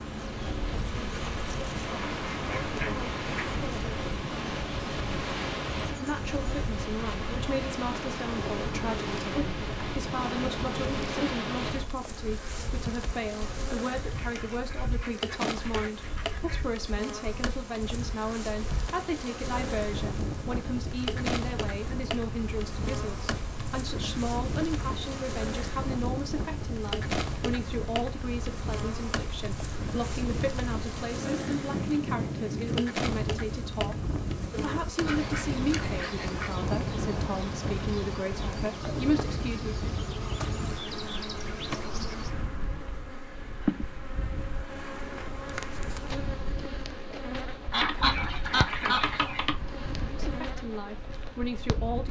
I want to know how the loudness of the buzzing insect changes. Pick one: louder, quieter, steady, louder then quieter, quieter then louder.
steady.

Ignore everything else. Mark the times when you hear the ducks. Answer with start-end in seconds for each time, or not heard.
1.9-3.5, 14.2-16.7, 35.0-36.5, 47.7-49.5.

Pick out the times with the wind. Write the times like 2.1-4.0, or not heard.
0.0-52.0.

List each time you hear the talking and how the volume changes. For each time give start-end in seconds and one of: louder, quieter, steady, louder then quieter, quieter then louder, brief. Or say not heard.
5.9-39.9 steady
50.2-52.0 brief.